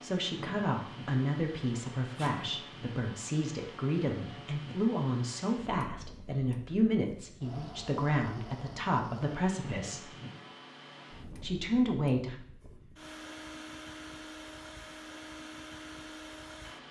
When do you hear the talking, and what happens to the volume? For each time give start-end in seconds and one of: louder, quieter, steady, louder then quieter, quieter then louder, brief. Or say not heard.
0.0-10.1 steady
11.4-12.3 brief.